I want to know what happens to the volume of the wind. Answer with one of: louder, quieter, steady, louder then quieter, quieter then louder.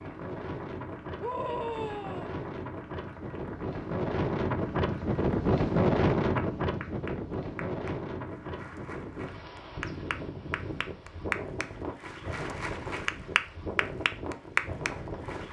louder then quieter.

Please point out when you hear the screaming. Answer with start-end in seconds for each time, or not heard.
1.2-2.4.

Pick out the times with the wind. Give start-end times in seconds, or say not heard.
0.0-15.4.